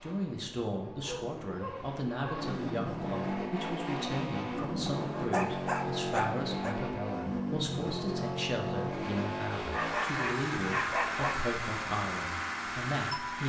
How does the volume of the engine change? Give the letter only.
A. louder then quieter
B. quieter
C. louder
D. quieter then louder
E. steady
C.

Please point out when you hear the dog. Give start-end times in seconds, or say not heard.
1.0-2.5, 4.8-6.8, 9.7-11.4.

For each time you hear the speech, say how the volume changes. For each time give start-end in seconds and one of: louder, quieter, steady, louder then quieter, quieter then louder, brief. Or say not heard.
0.0-13.4 steady.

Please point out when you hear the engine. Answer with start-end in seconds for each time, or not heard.
0.0-13.4.